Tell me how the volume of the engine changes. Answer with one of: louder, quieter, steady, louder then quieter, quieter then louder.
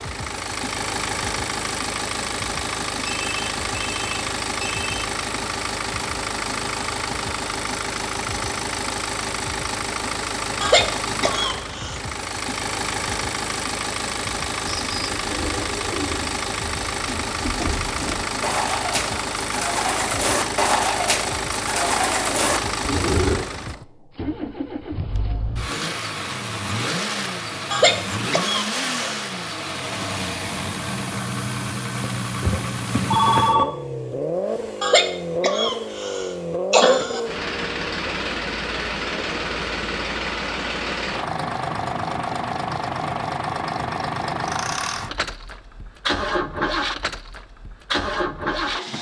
steady.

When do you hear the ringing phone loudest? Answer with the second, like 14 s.
33 s.